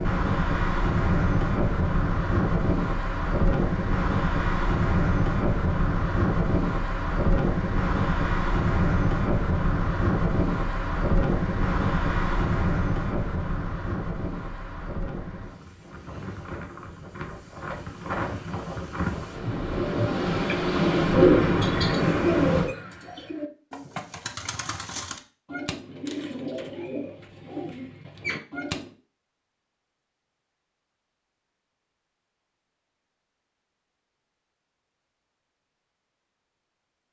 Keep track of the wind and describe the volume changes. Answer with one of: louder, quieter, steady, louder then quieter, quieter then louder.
quieter then louder.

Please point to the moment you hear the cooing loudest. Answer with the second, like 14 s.
21 s.